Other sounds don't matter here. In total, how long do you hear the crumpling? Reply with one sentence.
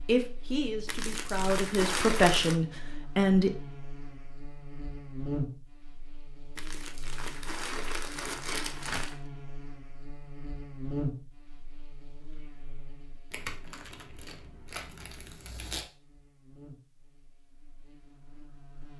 The crumpling can be heard for 7 seconds in total.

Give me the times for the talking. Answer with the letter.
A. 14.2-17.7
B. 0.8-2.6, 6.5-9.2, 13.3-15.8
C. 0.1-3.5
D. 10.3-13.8
C.